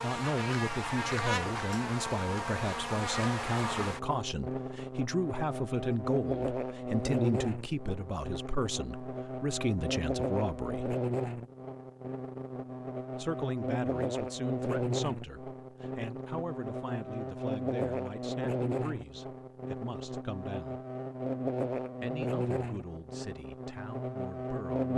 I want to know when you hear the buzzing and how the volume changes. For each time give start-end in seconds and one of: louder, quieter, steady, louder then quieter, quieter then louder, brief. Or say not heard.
0.0-24.9 steady.